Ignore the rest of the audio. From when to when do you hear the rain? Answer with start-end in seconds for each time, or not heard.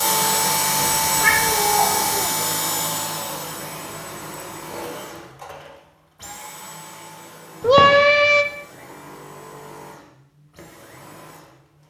not heard.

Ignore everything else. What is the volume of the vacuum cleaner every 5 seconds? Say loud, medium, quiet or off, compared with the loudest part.
loud, quiet, quiet.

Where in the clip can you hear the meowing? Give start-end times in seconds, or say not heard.
0.8-2.4, 7.6-8.4.